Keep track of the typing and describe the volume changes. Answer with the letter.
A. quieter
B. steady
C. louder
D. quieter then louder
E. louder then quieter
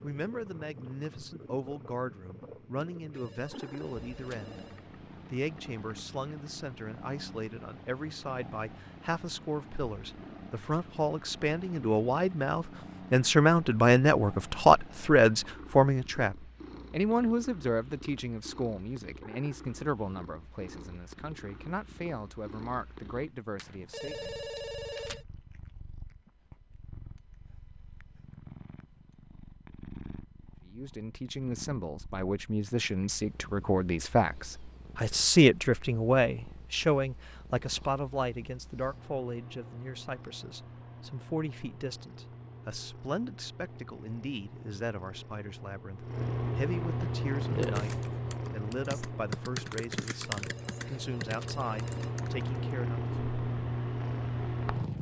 E.